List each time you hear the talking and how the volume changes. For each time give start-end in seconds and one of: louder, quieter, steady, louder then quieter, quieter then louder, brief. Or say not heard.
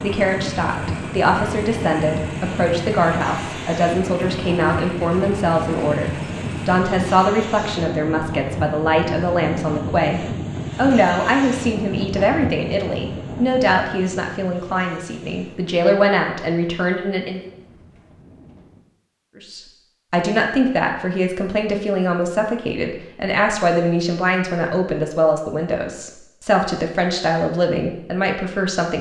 0.0-17.4 steady
19.4-28.9 steady.